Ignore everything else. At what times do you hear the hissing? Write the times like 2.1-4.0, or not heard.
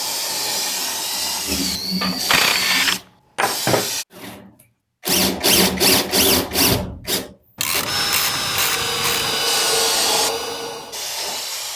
0.0-4.0, 9.4-11.7.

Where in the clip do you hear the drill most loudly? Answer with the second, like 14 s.
6 s.